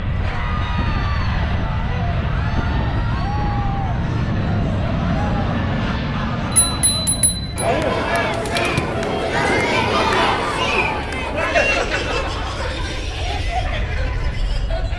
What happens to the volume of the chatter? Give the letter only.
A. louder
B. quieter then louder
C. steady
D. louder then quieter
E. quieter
D.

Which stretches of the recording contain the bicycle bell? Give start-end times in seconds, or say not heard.
6.5-7.7.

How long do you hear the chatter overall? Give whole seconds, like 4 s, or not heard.
15 s.